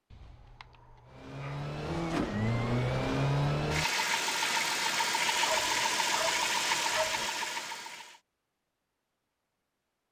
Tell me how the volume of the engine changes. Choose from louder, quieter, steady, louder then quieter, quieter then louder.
steady.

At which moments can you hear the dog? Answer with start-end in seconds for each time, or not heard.
0.1-1.7, 5.4-7.3.